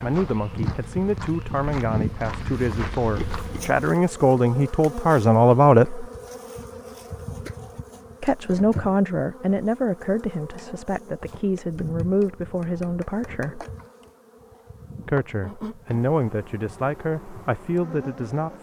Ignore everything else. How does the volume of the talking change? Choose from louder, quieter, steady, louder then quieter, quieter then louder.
louder then quieter.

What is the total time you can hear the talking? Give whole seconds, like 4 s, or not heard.
15 s.